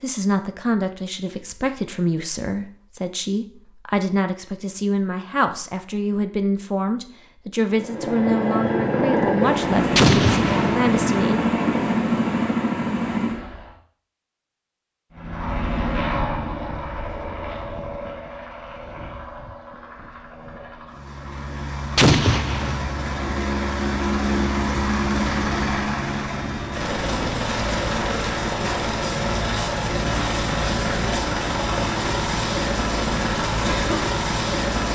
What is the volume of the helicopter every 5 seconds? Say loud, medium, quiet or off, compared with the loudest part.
off, loud, loud, medium, medium, loud, loud.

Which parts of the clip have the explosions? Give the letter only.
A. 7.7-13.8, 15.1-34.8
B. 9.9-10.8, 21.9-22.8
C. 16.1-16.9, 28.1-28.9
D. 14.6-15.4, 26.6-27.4
B.